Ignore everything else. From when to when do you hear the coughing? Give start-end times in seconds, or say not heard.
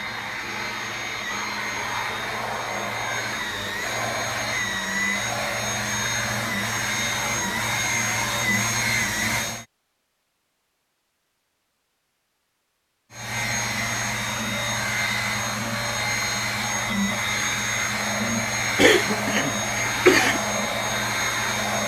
18.8-20.4.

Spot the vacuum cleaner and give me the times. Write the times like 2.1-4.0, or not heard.
0.0-9.7, 13.1-21.8.